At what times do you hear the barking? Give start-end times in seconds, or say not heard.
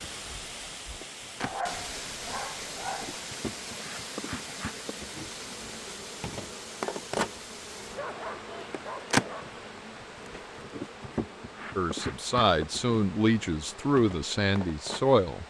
1.4-3.1, 8.0-9.6.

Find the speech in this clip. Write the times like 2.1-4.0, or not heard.
11.8-15.4.